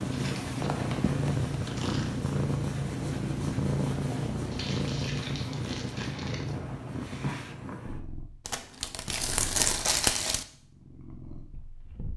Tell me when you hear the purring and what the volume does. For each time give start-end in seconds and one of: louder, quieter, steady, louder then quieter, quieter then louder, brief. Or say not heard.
0.0-12.1 quieter.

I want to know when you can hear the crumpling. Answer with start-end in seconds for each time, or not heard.
0.1-2.1, 4.5-6.5, 8.4-10.4.